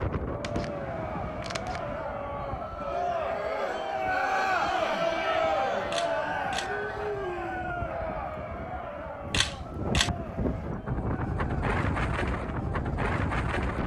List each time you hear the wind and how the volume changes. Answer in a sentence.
You can hear the wind from 0.0 to 13.8 s, getting quieter then louder.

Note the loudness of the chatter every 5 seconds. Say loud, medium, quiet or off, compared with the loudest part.
loud, loud, quiet.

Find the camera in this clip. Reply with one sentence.
You can hear the camera from 0.4 to 2.0 s, from 5.9 to 6.7 s and from 9.3 to 10.1 s.